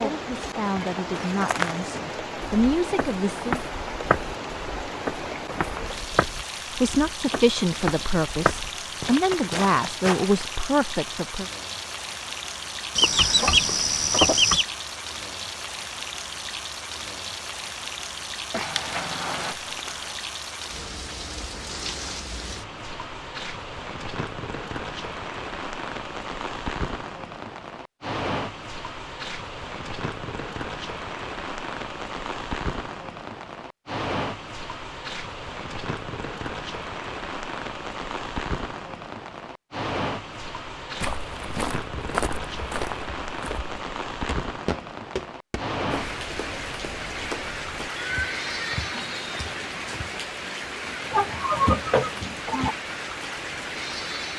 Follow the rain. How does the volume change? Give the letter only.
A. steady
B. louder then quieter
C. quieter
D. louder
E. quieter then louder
A.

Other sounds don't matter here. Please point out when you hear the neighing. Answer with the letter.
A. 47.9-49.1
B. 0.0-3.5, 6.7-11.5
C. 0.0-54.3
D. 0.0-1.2
A.